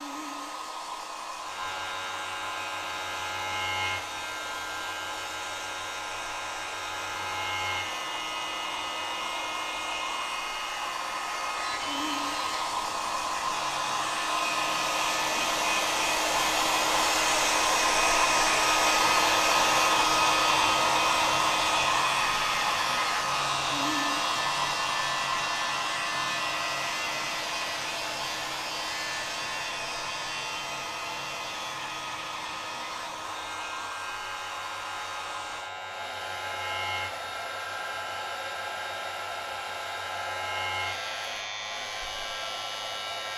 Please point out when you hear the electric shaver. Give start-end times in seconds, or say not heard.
1.4-43.3.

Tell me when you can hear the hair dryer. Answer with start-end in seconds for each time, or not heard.
0.0-43.3.